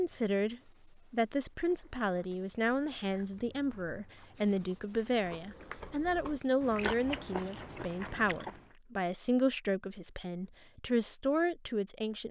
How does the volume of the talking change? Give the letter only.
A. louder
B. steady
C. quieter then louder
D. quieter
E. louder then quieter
B.